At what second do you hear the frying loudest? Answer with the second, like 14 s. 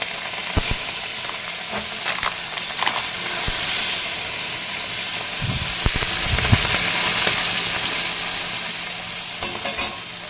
7 s.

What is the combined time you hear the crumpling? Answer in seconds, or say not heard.
2 s.